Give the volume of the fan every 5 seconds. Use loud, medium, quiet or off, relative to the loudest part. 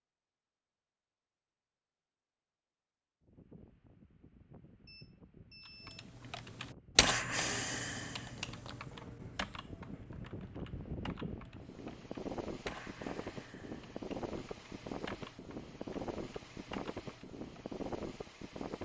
quiet, medium, loud, loud.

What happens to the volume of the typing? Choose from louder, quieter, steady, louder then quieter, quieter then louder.
quieter.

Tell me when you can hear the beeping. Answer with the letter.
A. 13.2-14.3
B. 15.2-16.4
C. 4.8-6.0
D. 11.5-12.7
C.